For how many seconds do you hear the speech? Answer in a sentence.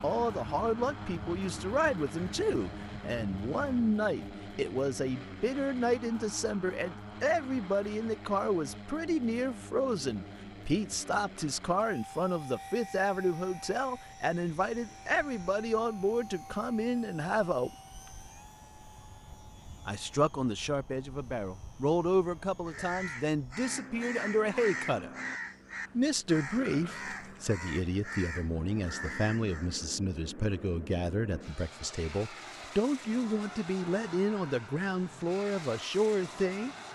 The speech can be heard for 34 seconds in total.